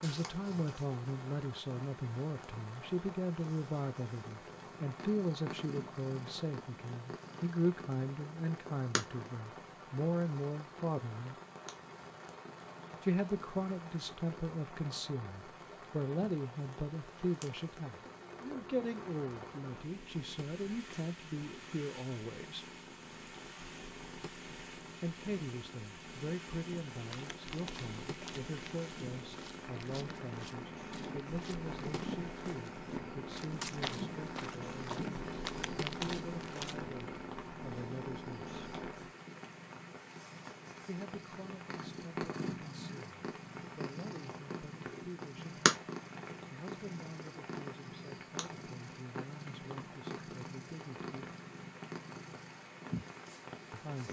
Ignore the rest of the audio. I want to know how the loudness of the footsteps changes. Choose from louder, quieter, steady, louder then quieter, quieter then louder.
louder.